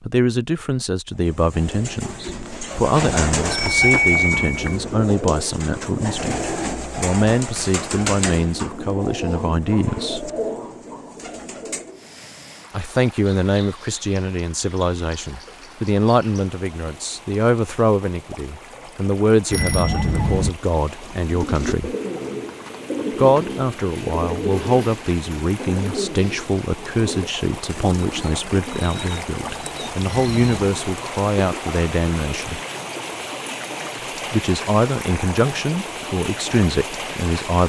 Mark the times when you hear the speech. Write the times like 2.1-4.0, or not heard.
0.0-10.3, 12.7-21.9, 23.1-32.6, 34.3-37.6.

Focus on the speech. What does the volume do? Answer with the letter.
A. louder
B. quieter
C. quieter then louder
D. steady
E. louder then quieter
D.